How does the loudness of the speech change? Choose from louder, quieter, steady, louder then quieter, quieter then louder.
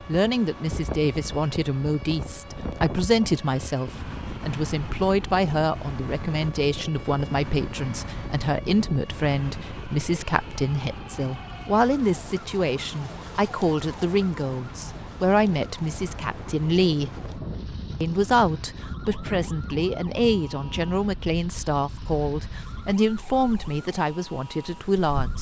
steady.